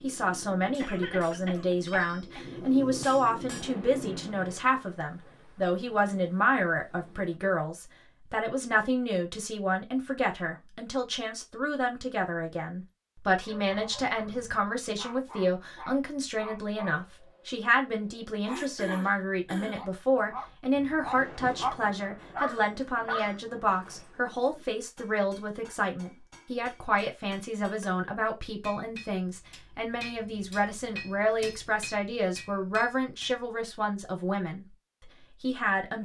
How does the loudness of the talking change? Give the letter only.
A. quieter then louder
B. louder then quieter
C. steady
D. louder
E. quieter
C.